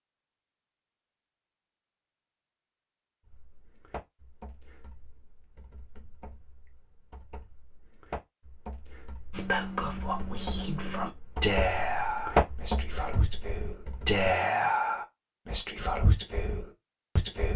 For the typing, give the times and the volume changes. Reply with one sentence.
The typing can be heard from 3.2 to 14.2 s, getting quieter then louder.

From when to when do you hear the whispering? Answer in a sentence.
The whispering can be heard from 9.3 to 17.5 s.